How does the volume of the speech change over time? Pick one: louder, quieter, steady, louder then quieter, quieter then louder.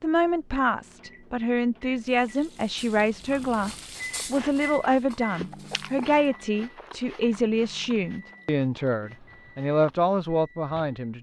steady.